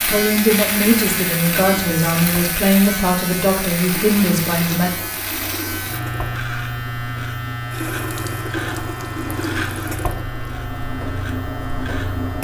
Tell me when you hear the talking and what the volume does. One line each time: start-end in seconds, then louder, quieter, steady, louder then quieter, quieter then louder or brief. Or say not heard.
0.0-4.9 steady.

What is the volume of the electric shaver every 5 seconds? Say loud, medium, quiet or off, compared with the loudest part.
loud, loud, medium.